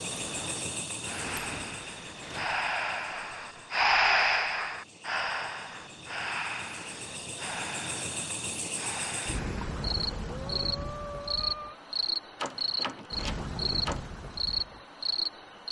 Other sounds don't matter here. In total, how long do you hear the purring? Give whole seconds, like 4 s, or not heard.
not heard.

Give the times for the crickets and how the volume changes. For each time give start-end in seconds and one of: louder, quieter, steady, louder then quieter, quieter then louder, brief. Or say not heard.
0.0-15.6 quieter then louder.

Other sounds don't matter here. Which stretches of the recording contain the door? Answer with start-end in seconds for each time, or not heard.
0.0-2.5, 12.3-14.1.